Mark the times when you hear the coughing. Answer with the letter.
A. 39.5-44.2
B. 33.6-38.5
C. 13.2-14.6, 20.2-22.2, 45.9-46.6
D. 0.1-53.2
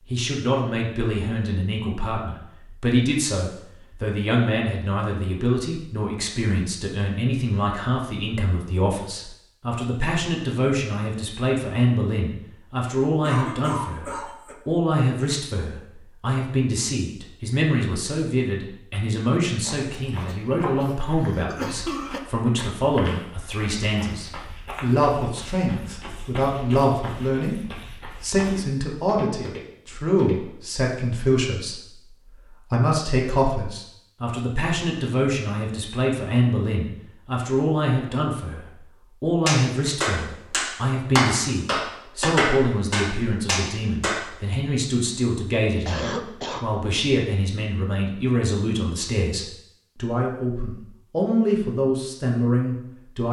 C.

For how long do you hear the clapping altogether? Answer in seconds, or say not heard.
5 s.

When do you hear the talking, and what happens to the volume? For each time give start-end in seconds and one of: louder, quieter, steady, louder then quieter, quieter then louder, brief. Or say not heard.
0.1-53.2 steady.